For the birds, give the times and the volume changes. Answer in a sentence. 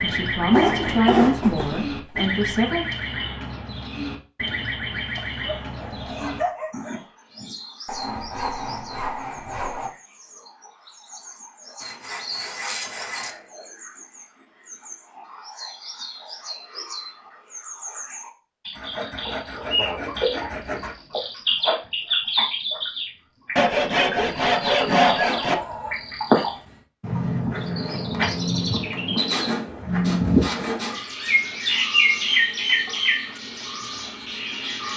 The birds can be heard from 0.0 to 34.9 s, getting quieter then louder.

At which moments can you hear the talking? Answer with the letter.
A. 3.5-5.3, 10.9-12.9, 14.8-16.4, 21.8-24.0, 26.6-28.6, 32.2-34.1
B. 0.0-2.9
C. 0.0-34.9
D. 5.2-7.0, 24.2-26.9
B.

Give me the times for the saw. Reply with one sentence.
The saw can be heard from 0.5 to 2.2 s, from 7.8 to 9.9 s, from 11.8 to 13.3 s, from 18.8 to 20.9 s, from 23.6 to 25.6 s and from 29.1 to 31.1 s.